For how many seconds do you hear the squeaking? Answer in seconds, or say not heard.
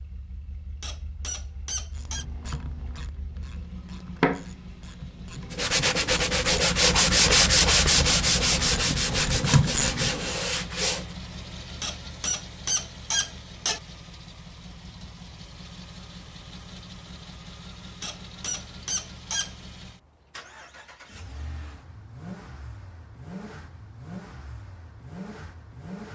5 s.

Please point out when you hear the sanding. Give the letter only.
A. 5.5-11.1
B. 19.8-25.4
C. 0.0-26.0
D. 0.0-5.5
A.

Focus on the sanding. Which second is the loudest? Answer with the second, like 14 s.
7 s.